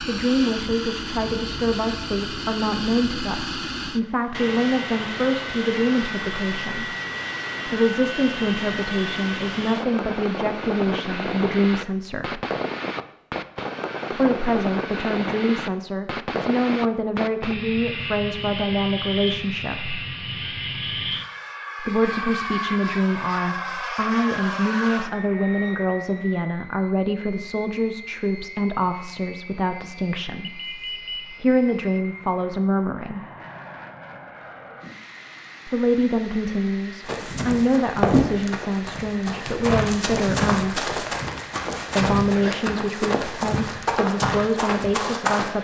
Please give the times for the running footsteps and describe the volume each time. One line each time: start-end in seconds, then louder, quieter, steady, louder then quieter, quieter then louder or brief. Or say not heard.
37.0-45.5 steady.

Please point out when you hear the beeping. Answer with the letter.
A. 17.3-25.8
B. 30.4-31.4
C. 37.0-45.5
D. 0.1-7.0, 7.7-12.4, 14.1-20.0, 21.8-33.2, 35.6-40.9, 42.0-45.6
B.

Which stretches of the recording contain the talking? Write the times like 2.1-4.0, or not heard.
0.1-7.0, 7.7-12.4, 14.1-20.0, 21.8-33.2, 35.6-40.9, 42.0-45.6.